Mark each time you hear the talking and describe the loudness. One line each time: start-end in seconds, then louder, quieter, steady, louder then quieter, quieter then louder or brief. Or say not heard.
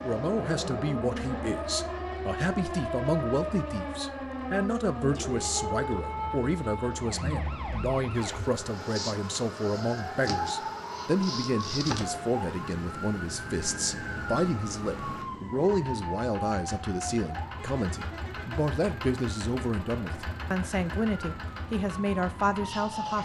0.0-23.2 steady.